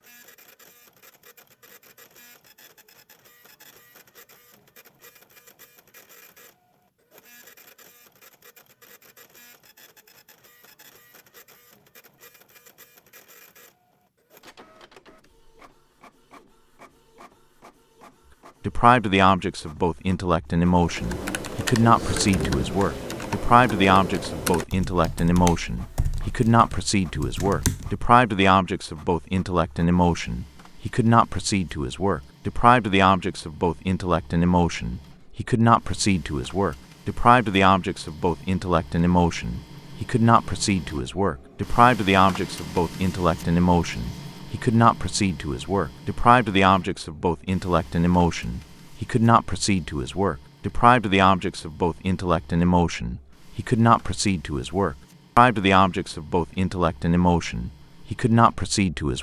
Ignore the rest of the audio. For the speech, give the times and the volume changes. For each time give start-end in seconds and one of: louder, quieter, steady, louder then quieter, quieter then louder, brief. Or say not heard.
18.6-59.1 steady.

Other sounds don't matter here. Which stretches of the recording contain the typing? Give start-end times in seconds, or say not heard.
20.7-28.1.